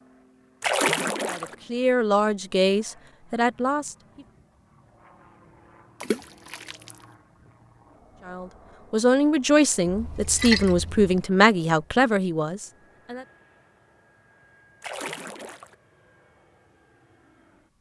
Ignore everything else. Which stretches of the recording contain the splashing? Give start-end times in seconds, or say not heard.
0.6-1.6, 6.0-7.0, 9.8-11.1, 14.8-15.8.